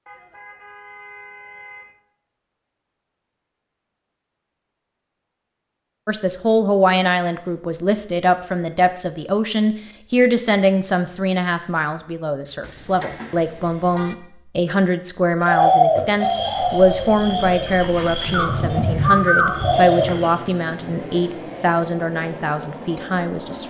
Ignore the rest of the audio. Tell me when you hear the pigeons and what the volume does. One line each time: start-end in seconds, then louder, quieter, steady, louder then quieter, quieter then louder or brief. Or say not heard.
15.4-20.3 quieter then louder.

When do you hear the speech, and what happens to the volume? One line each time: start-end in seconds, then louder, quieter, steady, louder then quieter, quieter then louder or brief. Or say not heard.
6.0-23.6 steady.